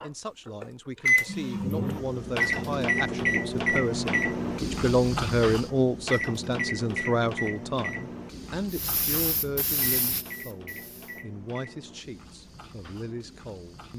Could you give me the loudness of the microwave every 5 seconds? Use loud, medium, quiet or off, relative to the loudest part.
loud, medium, quiet.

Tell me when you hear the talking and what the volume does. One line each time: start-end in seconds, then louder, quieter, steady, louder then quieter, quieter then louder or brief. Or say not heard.
0.0-13.9 louder then quieter.